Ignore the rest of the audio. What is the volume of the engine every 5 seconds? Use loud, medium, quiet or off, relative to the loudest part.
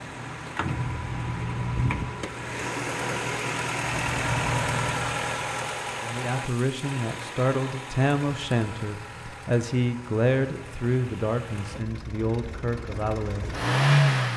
loud, medium, loud.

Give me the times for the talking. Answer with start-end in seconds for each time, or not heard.
6.0-13.5.